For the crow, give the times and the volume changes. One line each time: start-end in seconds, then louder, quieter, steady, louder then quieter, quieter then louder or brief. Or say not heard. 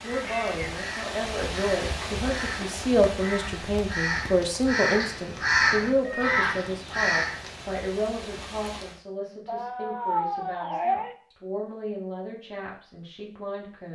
0.0-7.8 louder.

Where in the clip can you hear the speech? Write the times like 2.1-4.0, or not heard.
0.0-13.8.